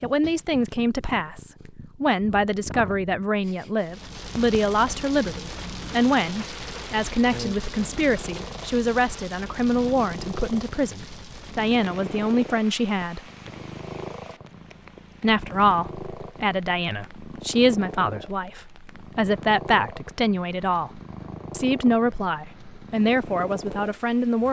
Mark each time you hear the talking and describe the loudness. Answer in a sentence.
The talking can be heard from 0.0 to 13.2 s, at a steady volume; and from 15.2 to 24.4 s, at a steady volume.